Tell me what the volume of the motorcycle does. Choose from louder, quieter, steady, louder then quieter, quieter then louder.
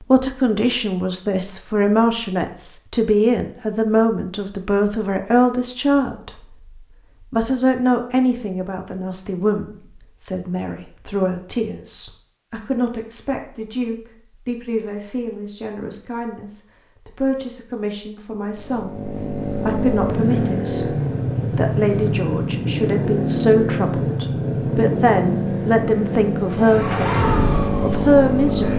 steady.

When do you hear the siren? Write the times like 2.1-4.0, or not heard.
26.4-28.7.